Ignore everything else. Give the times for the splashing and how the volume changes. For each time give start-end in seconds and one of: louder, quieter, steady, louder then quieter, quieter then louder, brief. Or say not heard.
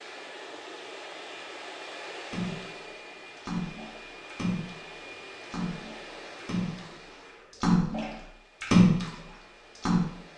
2.2-10.1 louder.